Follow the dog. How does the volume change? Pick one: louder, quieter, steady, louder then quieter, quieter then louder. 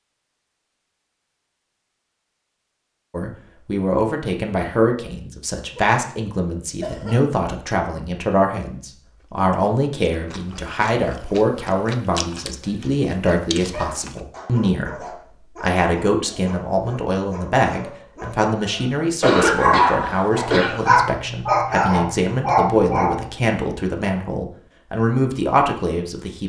louder.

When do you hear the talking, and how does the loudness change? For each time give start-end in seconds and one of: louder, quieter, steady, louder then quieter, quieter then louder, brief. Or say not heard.
3.1-26.4 steady.